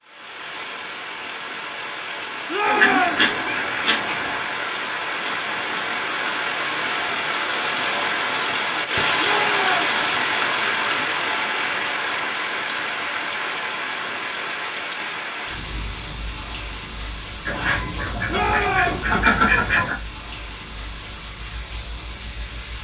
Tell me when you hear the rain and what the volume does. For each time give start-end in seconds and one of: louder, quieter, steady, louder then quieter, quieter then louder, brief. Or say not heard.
0.0-22.7 louder then quieter.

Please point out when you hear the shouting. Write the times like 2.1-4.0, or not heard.
2.5-3.3, 9.2-9.9, 18.3-19.1.